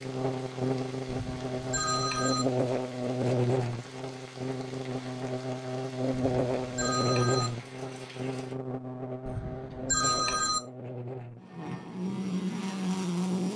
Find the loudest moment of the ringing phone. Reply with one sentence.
The volume of the ringing phone peaks at 10 seconds.